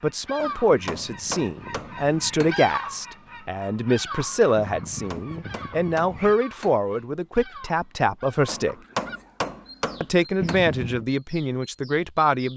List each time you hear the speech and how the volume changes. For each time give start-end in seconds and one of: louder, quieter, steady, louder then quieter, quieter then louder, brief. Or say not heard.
0.0-8.8 steady
10.0-12.5 brief.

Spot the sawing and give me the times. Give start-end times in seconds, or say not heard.
not heard.